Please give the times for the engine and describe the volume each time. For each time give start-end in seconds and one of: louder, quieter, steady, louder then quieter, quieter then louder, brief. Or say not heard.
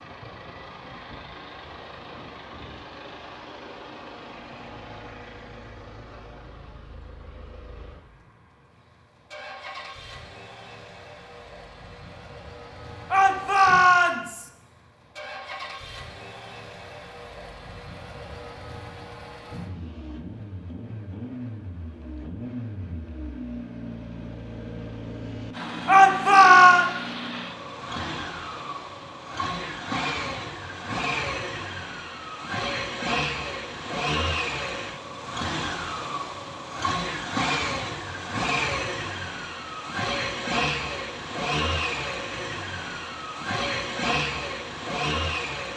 0.0-45.7 louder.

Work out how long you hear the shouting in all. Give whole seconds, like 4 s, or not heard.
2 s.